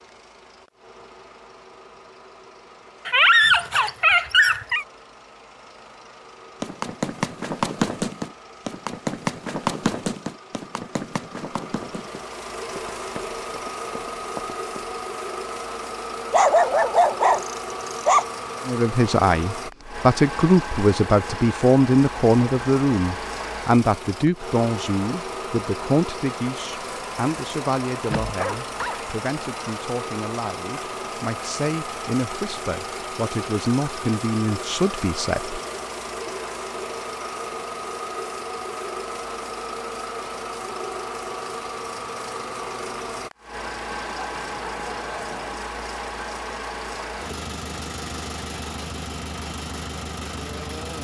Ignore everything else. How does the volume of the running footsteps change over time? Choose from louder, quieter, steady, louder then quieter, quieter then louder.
quieter.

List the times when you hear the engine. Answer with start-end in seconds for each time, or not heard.
0.0-50.9.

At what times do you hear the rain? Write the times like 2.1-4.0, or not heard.
not heard.